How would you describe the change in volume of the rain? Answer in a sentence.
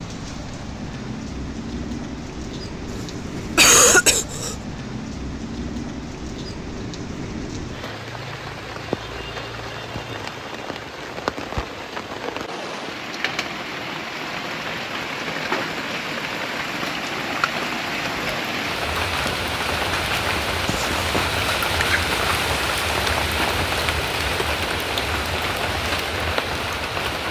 The loudness of the rain goes up.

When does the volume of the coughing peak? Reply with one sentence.
The loudest moment of the coughing is at 4 seconds.